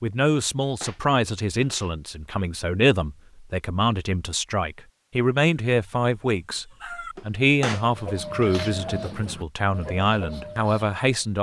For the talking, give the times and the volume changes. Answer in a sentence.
You can hear the talking from 0.0 to 11.3 s, at a steady volume.